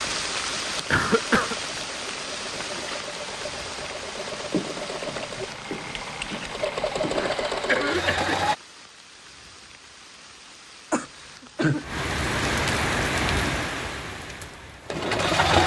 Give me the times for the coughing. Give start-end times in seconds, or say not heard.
0.9-1.6, 7.2-8.3, 10.9-11.8.